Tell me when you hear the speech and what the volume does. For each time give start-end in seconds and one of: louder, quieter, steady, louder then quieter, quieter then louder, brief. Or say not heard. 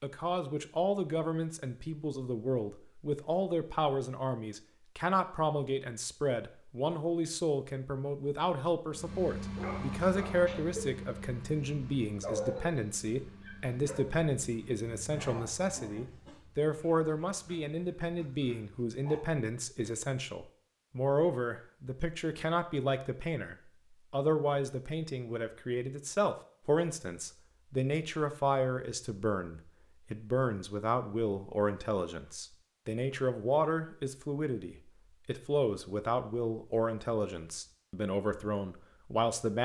0.0-39.6 steady.